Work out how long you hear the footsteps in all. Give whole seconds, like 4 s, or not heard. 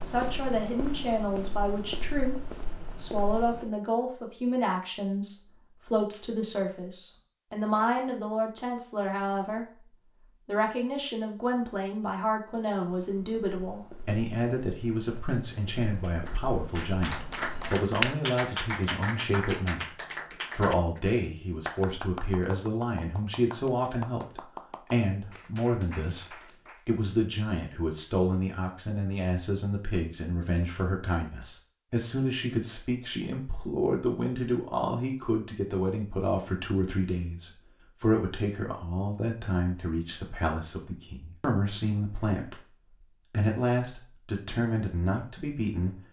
9 s.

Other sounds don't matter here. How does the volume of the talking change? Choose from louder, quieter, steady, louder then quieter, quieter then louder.
steady.